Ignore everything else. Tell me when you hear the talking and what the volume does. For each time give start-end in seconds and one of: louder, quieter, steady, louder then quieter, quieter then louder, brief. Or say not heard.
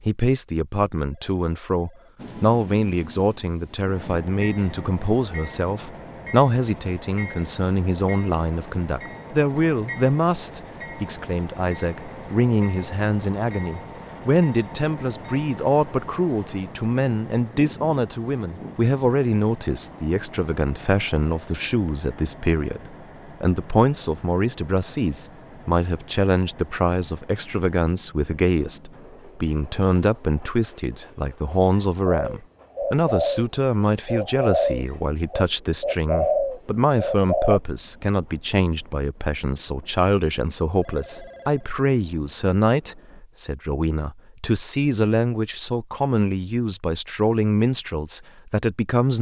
0.0-49.1 steady.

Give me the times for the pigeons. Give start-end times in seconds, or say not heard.
32.0-37.6.